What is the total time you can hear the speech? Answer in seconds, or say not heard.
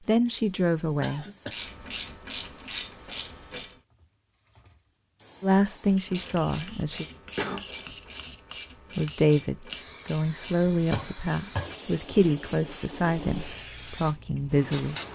9 s.